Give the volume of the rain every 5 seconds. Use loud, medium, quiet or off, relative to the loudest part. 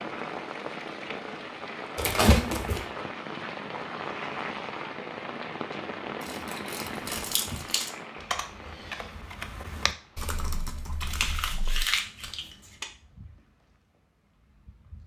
loud, loud, quiet.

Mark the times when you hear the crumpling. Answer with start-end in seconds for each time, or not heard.
1.9-2.9, 6.2-7.9, 11.0-12.8.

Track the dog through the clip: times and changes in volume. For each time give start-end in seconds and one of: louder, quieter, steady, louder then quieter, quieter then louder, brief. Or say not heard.
not heard.